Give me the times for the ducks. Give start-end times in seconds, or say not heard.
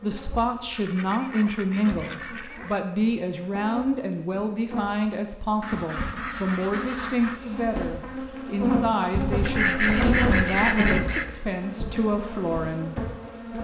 0.3-2.8, 5.6-7.4, 9.2-11.3.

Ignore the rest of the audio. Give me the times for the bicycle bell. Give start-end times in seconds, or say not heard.
not heard.